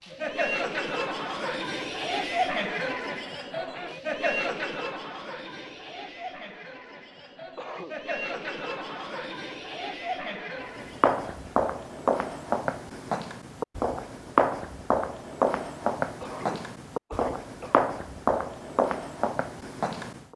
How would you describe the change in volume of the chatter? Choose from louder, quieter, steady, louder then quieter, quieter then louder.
quieter.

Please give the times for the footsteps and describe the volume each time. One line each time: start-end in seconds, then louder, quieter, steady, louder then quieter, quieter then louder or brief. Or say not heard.
10.6-20.2 steady.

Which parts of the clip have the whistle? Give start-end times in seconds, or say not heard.
not heard.